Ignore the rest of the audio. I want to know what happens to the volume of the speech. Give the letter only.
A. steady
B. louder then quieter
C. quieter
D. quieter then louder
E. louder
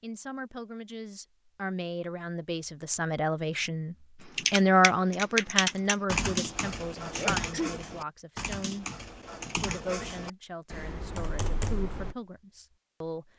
B.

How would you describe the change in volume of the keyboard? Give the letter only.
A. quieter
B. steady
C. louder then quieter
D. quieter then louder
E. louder
A.